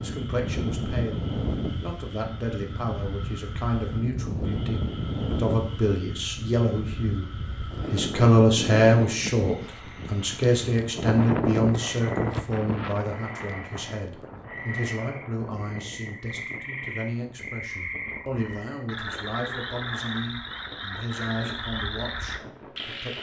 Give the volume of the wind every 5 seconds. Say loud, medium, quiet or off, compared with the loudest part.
loud, loud, loud, quiet, quiet.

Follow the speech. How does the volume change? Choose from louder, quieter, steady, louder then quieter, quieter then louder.
louder then quieter.